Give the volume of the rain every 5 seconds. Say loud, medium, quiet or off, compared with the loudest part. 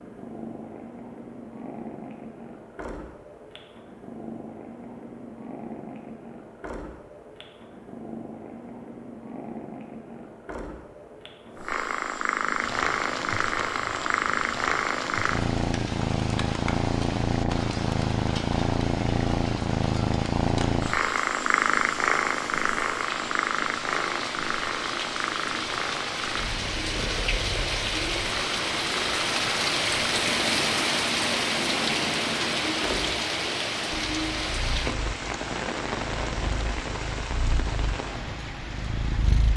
off, off, medium, medium, medium, loud, loud, medium.